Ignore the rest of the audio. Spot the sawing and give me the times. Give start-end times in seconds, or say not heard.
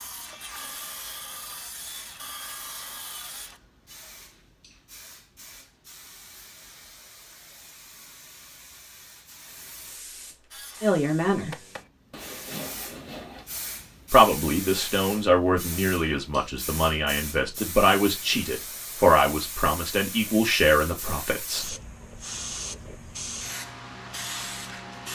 0.0-3.6, 10.5-13.4.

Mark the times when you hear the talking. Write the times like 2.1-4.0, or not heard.
10.8-11.6, 14.1-21.8.